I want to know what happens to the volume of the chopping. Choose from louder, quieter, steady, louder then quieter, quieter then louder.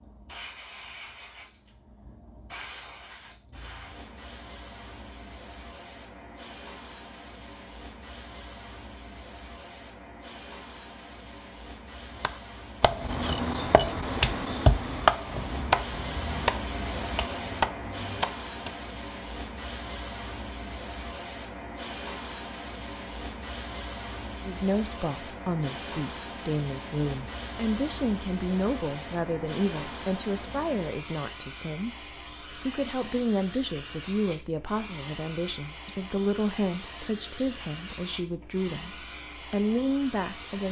louder then quieter.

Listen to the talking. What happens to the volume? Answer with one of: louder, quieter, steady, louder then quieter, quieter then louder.
steady.